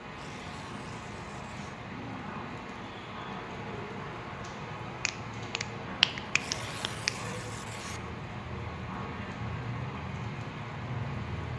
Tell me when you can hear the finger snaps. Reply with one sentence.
You can hear the finger snaps from 4.8 to 7.1 s.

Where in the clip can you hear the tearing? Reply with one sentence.
The tearing can be heard from 0.1 to 1.8 s and from 6.2 to 8.0 s.